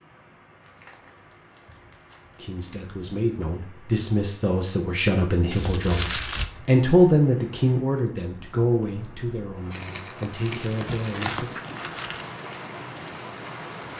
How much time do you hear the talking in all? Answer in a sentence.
The talking can be heard for 9 seconds in total.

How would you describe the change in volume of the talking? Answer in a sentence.
The volume of the talking goes up, then down.